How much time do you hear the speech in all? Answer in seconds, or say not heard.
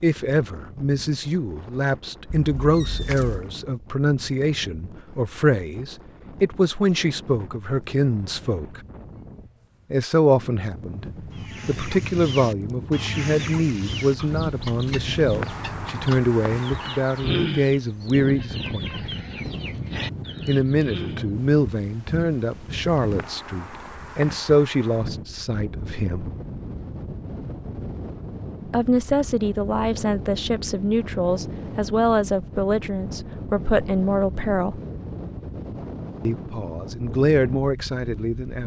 32 s.